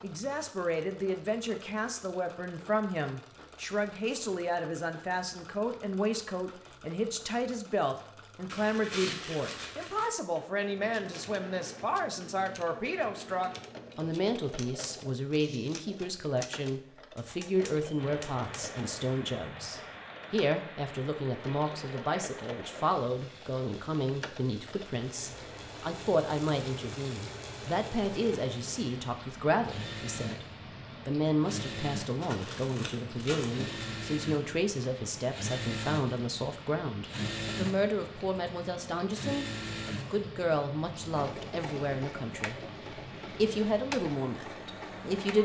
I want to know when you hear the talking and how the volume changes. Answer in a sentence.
You can hear the talking from 0.0 to 42.5 s, at a steady volume; and briefly from 43.2 to 45.4 s.